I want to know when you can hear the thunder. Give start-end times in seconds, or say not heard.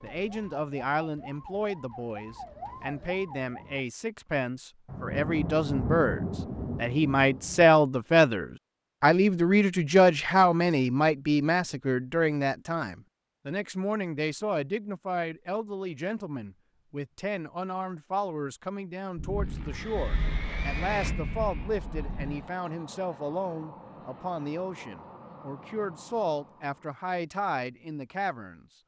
4.8-7.7, 19.1-22.5.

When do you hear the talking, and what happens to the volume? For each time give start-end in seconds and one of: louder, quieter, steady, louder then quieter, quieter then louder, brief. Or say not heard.
0.0-28.6 louder then quieter.